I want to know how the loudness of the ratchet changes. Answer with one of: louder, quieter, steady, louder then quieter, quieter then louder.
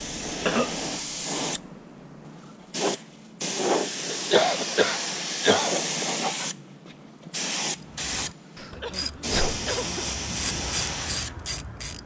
louder.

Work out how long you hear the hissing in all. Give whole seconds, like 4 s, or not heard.
12 s.